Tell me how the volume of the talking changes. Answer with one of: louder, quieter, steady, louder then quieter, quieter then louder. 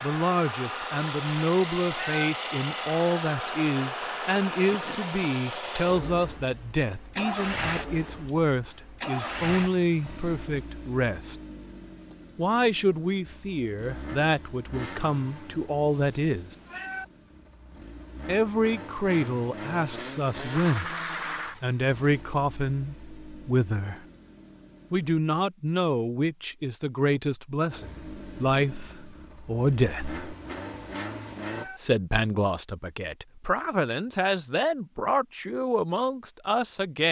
steady.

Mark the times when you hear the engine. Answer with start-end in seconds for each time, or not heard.
0.0-25.2, 27.7-31.6.